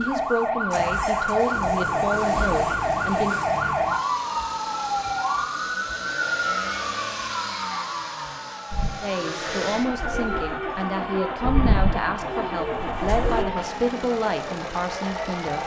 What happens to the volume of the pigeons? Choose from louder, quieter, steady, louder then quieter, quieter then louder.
louder then quieter.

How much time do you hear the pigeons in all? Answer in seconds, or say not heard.
5 s.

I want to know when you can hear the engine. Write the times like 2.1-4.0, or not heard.
0.0-15.6.